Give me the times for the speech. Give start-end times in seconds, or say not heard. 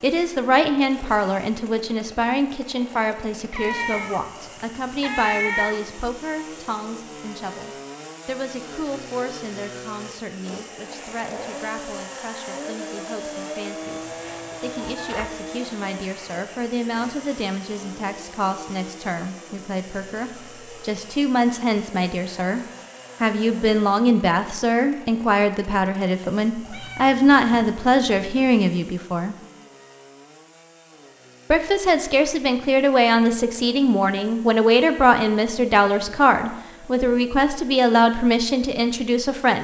0.0-22.6, 23.2-29.4, 31.5-39.5.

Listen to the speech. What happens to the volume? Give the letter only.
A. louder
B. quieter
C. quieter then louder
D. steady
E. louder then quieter
C.